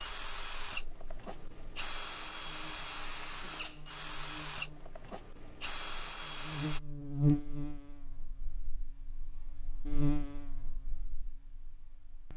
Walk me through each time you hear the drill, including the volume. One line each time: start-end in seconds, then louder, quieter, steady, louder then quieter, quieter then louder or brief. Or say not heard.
0.0-6.8 steady.